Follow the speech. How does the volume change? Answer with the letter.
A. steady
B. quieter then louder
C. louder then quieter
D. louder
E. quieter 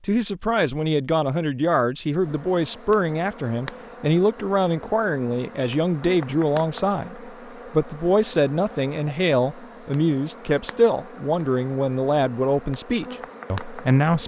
A.